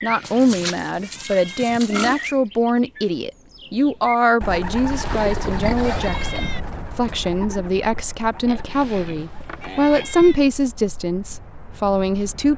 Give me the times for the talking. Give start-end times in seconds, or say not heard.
0.0-12.5.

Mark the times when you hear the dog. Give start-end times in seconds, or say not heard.
not heard.